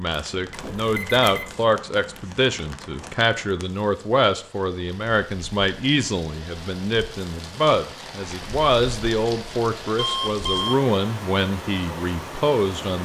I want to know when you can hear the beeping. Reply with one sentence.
The beeping can be heard from 0.5 to 1.6 s and from 9.9 to 10.8 s.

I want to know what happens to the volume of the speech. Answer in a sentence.
The volume of the speech stays about the same.